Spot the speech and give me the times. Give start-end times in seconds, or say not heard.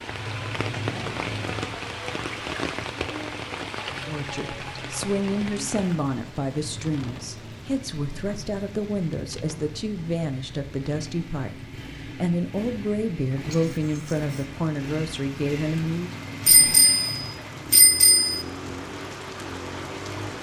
4.0-16.1.